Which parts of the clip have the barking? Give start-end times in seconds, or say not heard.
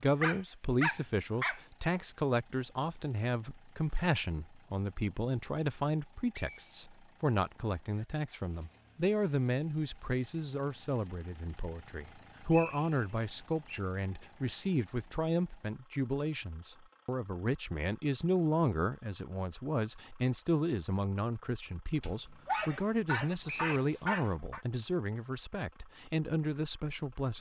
0.2-1.6, 22.0-24.6.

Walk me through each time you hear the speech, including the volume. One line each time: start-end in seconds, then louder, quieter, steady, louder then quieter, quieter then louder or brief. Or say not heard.
0.0-27.3 steady.